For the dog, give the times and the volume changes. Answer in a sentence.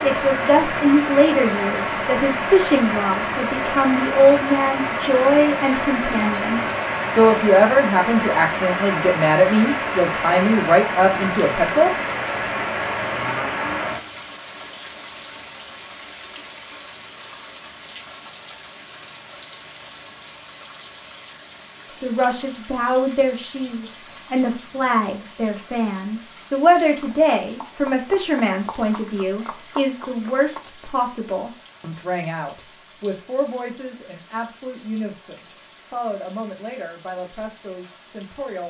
You can't hear the dog here.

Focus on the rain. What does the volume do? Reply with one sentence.
The volume of the rain goes down.